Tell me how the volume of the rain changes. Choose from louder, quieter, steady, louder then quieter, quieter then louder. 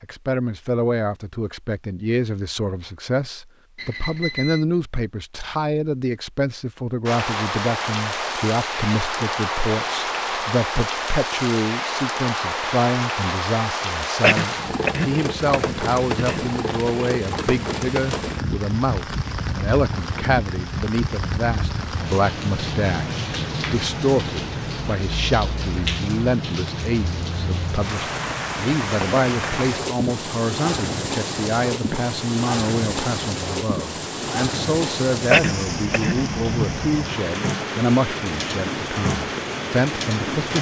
steady.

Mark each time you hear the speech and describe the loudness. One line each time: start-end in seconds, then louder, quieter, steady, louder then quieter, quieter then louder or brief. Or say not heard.
0.0-40.5 steady.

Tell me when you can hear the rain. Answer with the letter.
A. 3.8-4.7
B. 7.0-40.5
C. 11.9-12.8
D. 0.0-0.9
B.